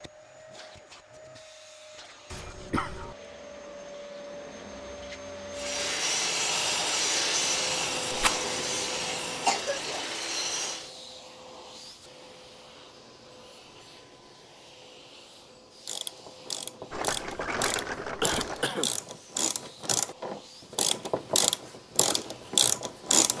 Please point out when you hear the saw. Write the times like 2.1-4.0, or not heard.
5.5-10.9.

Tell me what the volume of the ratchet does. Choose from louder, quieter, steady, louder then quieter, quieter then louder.
louder.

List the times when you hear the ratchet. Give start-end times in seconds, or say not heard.
15.8-23.3.